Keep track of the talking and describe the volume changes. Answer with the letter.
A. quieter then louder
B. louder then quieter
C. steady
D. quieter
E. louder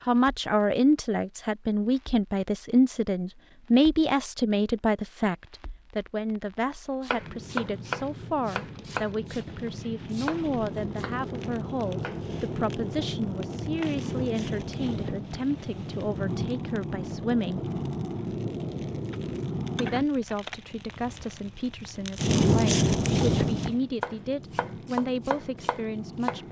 D.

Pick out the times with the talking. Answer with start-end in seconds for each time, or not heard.
0.1-17.6, 19.8-26.4.